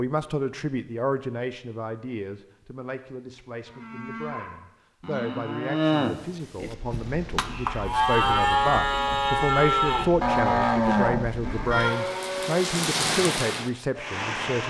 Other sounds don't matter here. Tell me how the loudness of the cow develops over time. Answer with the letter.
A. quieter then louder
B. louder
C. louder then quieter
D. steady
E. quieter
B.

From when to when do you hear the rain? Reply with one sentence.
You can hear the rain from 6.5 to 14.6 s.